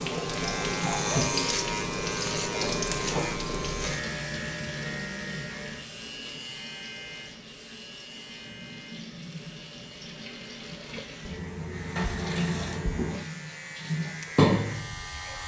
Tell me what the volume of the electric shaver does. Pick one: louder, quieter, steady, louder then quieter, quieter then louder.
quieter then louder.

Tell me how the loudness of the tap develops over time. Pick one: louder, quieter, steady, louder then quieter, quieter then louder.
quieter then louder.